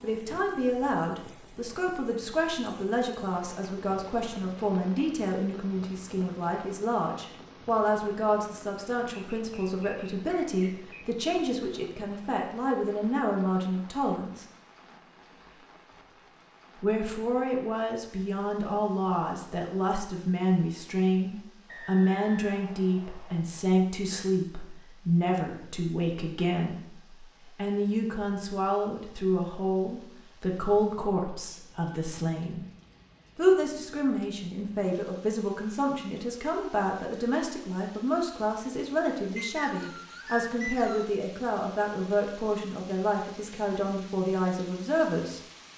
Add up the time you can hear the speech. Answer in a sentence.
You can hear the speech for 42 seconds altogether.